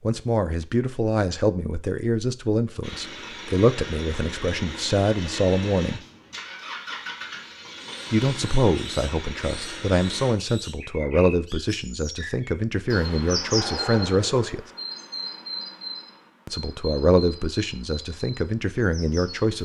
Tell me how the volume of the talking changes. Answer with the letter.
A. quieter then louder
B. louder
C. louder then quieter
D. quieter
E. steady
E.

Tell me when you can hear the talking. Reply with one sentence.
The talking can be heard from 0.0 to 6.0 s, from 8.1 to 14.6 s and from 16.4 to 19.6 s.